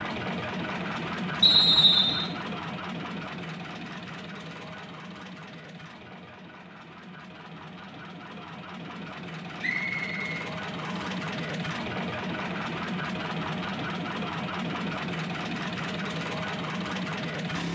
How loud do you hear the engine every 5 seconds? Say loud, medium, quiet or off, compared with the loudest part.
loud, medium, loud, loud.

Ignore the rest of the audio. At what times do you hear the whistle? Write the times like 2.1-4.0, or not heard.
1.4-2.3, 9.6-11.1.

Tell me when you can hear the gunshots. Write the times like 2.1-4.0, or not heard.
not heard.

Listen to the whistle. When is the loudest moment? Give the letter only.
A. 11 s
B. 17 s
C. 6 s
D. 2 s
D.